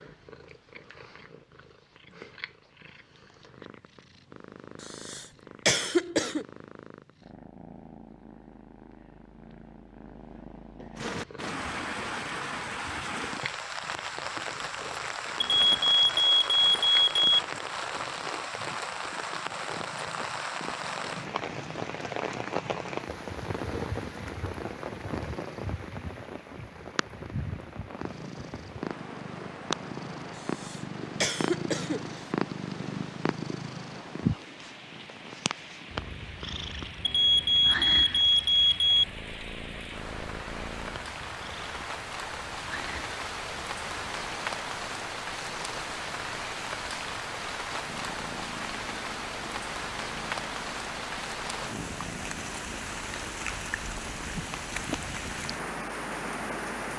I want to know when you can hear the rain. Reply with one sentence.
You can hear the rain from 10.9 to 56.9 s.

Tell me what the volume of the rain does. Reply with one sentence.
The loudness of the rain goes down, then up.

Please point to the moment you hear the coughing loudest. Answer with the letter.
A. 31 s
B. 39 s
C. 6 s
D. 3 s
C.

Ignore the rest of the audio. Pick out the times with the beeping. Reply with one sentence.
The beeping can be heard from 15.4 to 17.4 s and from 37.0 to 39.0 s.